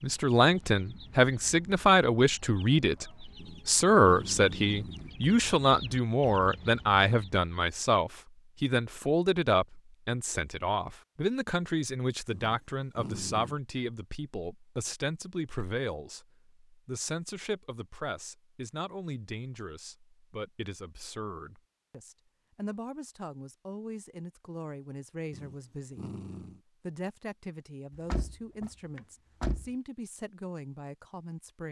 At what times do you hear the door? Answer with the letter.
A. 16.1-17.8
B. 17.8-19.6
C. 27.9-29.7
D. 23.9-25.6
C.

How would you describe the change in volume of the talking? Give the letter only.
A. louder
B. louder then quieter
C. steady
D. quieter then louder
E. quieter
E.